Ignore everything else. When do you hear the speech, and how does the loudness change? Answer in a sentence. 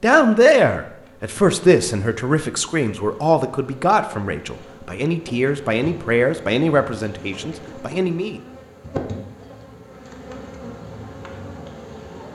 The speech can be heard from 0.0 to 8.4 s, getting quieter.